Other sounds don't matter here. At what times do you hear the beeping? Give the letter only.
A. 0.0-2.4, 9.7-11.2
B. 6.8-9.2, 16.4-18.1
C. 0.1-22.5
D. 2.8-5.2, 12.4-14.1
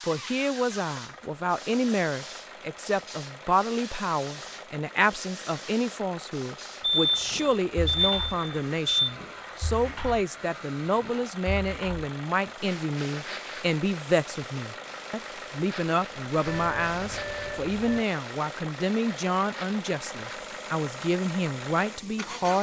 B.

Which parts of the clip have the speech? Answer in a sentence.
The speech can be heard from 0.1 to 22.5 s.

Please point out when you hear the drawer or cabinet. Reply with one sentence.
The drawer or cabinet can't be heard in this clip.